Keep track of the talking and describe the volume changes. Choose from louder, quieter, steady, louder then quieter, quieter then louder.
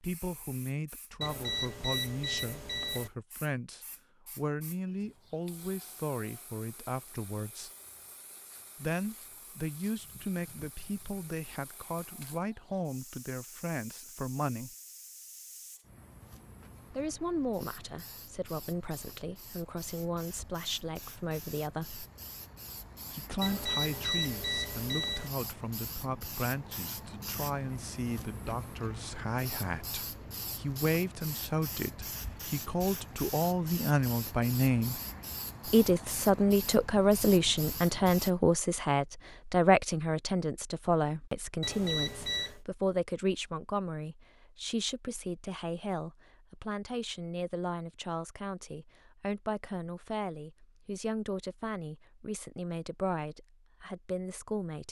louder then quieter.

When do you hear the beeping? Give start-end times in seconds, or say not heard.
1.2-3.1, 23.4-25.3, 41.6-42.6.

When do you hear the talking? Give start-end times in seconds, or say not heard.
0.0-7.7, 8.8-14.8, 16.9-22.1, 23.1-35.0, 35.6-54.8.